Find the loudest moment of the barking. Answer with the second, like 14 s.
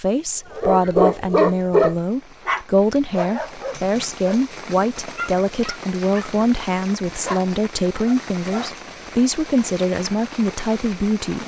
2 s.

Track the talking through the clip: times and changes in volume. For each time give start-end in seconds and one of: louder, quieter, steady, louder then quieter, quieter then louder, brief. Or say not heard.
0.0-11.4 steady.